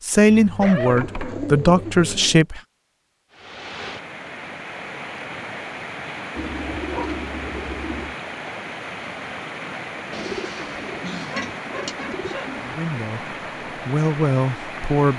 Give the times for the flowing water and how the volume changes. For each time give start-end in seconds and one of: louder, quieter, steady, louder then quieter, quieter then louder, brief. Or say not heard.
3.3-15.1 steady.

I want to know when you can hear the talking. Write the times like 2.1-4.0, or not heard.
0.0-2.6, 12.6-15.1.